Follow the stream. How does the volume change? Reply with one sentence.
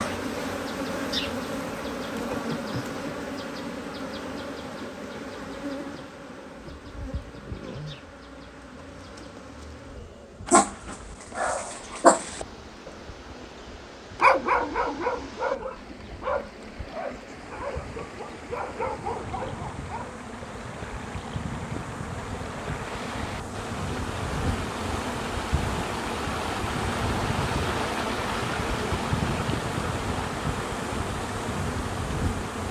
The volume of the stream goes up.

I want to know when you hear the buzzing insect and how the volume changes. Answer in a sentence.
You can hear the buzzing insect from 0.0 to 32.6 s, getting quieter then louder.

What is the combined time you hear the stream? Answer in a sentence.
You can hear the stream for 21 seconds altogether.